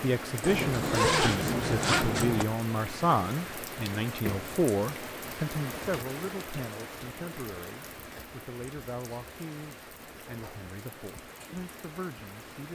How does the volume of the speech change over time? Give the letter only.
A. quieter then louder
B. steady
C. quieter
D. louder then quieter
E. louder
C.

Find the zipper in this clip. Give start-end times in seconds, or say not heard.
0.4-2.5.